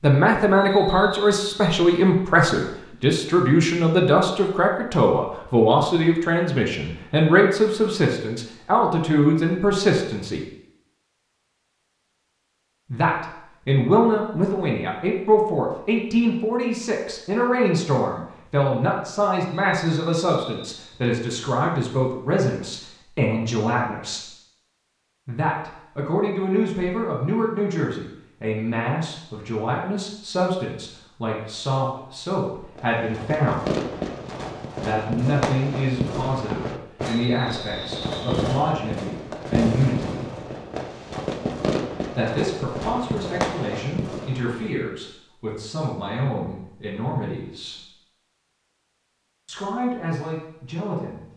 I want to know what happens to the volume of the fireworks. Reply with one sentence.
The volume of the fireworks stays about the same.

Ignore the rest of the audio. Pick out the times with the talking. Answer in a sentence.
The talking can be heard from 0.0 to 10.4 s, from 12.9 to 24.2 s, from 25.2 to 33.8 s, from 34.8 to 40.4 s, from 42.1 to 47.8 s and from 49.5 to 51.3 s.